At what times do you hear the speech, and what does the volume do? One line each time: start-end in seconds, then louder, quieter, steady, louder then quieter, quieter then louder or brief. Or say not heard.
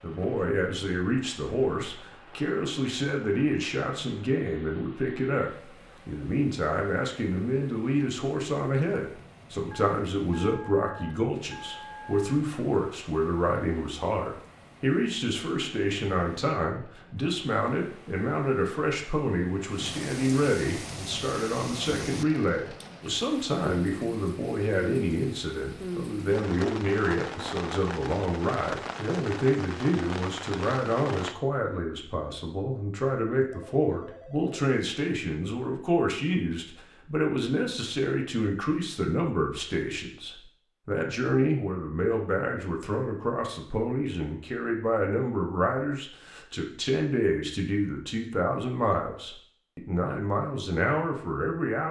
0.0-51.8 steady.